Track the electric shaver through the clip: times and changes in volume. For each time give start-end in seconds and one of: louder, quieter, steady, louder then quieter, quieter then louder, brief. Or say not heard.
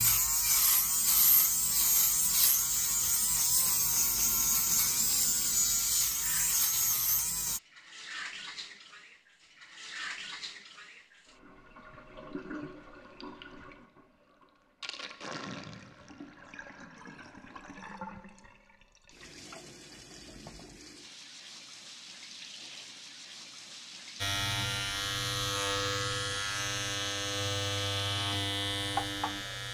0.0-7.6 steady
24.2-29.6 steady.